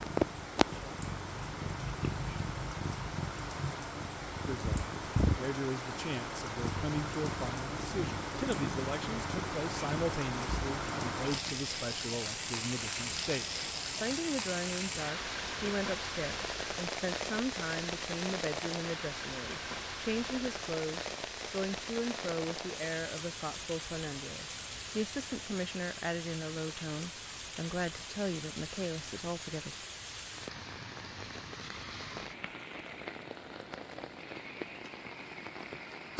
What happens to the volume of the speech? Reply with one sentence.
The loudness of the speech stays about the same.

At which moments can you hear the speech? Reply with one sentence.
The speech can be heard from 4.5 to 29.9 s.